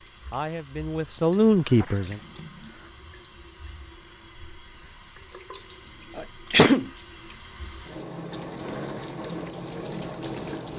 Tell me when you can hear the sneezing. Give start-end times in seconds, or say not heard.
1.1-2.9, 6.2-6.9.